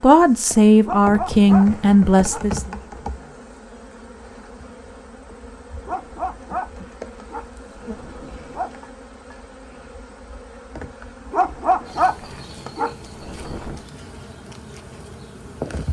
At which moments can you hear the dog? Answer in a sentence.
The dog can be heard from 0.8 to 3.1 s, from 5.8 to 8.8 s and from 11.3 to 13.8 s.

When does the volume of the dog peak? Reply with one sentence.
The volume of the dog peaks at 12 seconds.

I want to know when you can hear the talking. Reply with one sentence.
You can hear the talking from 0.0 to 2.8 s.